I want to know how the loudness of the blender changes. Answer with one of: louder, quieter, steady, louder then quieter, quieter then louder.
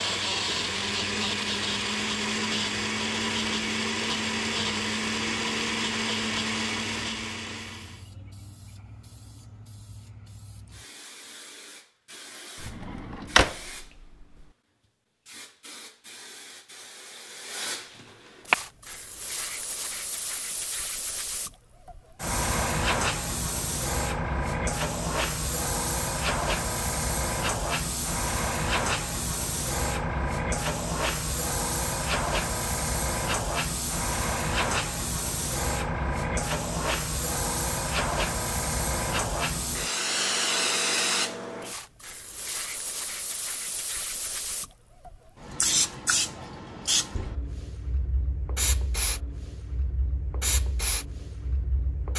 steady.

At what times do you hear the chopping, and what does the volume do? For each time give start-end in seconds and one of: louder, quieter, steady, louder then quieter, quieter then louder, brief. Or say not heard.
not heard.